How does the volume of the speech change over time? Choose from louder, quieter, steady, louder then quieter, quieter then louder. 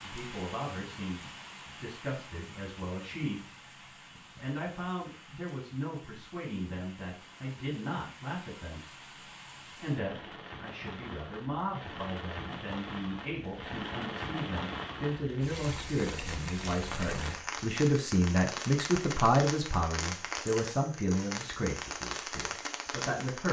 louder.